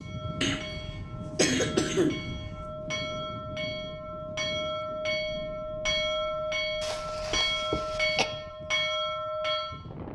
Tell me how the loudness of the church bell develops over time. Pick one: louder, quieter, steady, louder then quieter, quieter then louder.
louder.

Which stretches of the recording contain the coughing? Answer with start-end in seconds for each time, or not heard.
0.4-2.8, 6.8-8.2.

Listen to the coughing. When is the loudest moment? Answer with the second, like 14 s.
2 s.